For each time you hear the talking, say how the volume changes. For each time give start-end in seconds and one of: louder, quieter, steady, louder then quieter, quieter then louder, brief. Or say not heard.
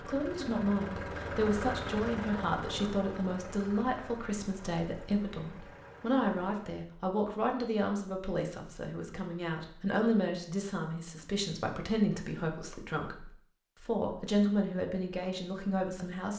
0.0-16.3 steady.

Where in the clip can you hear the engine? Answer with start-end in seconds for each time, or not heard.
0.0-6.8.